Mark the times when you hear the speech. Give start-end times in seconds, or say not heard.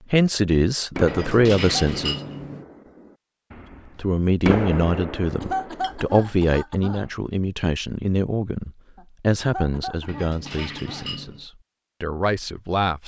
0.1-2.1, 4.0-13.0.